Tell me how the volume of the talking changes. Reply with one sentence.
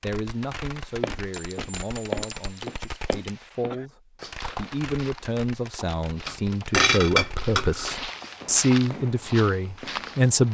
The loudness of the talking goes up.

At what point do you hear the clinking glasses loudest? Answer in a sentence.
The volume of the clinking glasses peaks at 7 seconds.